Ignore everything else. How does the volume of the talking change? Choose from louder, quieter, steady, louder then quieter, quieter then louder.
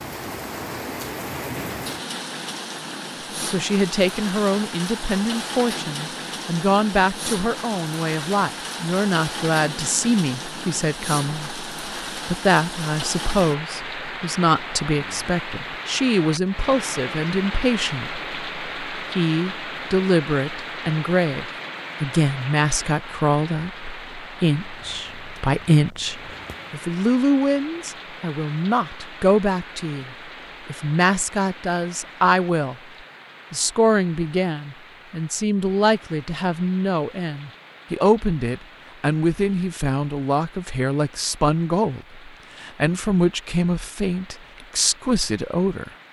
steady.